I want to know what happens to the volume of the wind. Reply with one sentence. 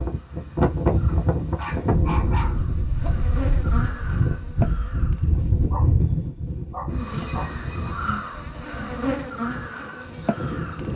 The volume of the wind goes down.